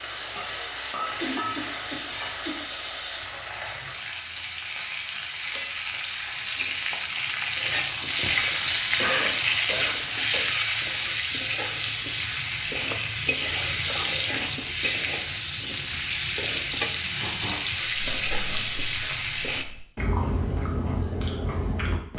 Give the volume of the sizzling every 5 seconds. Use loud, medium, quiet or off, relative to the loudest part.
medium, loud, loud, loud, off.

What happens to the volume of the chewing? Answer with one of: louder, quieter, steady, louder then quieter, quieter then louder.
louder.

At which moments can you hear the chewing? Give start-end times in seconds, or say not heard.
17.9-22.1.